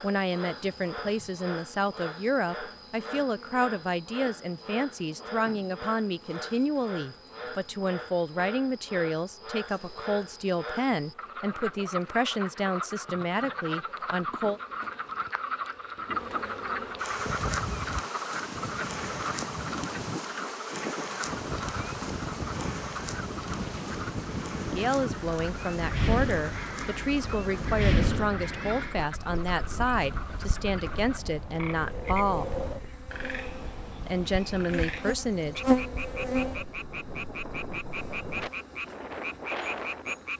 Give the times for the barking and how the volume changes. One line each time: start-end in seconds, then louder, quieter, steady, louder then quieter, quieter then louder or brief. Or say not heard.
not heard.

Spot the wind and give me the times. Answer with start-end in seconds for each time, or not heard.
17.1-40.3.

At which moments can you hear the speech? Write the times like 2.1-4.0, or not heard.
0.0-14.6, 24.7-32.5, 34.0-35.6.